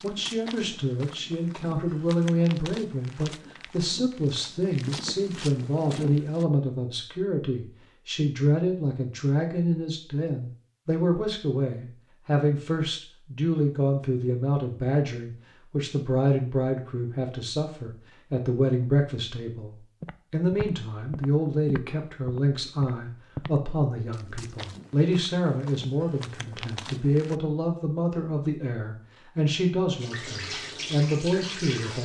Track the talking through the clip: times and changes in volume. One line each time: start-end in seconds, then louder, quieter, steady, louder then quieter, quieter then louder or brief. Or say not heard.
0.0-32.0 steady.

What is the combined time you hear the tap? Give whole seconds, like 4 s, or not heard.
2 s.